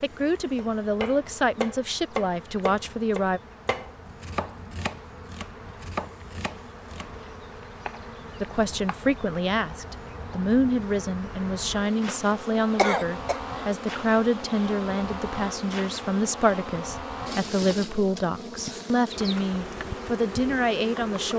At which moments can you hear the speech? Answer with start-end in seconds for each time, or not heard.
0.0-3.4, 8.4-21.3.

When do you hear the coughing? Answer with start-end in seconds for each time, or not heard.
12.1-13.4.